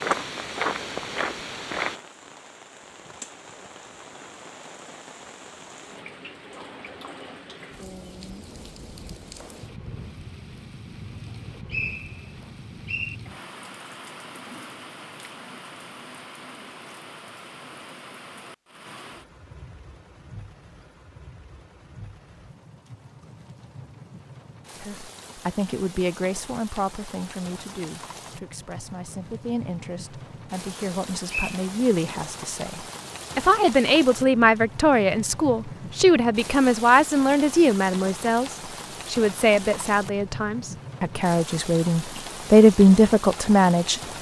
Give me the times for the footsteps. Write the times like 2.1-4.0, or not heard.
0.0-2.0.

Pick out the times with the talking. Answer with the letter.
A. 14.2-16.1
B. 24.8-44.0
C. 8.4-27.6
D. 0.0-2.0
B.